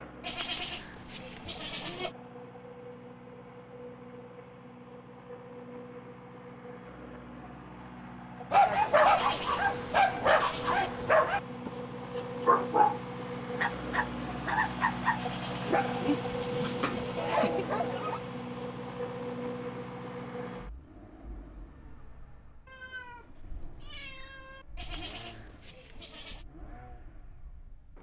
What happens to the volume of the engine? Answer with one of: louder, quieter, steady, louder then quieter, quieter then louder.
louder then quieter.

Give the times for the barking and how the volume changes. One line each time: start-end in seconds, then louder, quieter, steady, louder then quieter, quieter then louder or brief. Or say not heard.
8.5-18.2 quieter.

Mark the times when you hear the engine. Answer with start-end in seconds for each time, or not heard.
0.0-27.9.